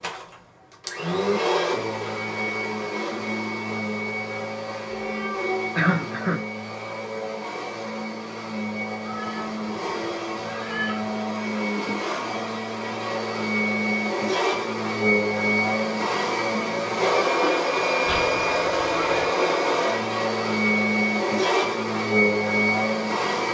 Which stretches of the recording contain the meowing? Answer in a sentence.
You can hear the meowing from 4.8 to 5.8 s, from 9.1 to 11.2 s and from 18.1 to 19.4 s.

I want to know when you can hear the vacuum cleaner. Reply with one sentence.
You can hear the vacuum cleaner from 0.0 to 23.4 s.